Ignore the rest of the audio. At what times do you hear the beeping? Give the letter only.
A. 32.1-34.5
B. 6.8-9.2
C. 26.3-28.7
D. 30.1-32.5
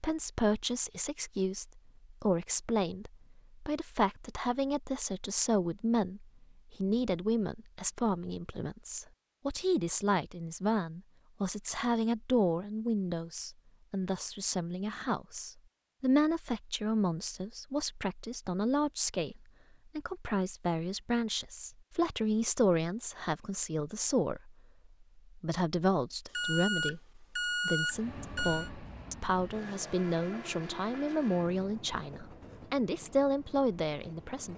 C.